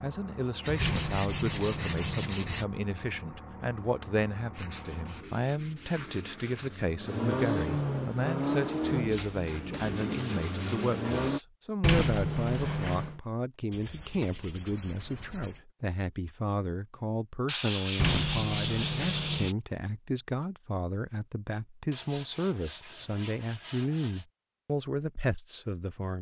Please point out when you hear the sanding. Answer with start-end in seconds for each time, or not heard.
0.7-2.6, 4.5-6.8, 9.1-11.4, 13.7-15.7, 17.4-19.6, 21.9-24.2.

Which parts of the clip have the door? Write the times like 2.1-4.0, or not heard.
0.8-2.3, 11.8-13.2, 17.9-19.5.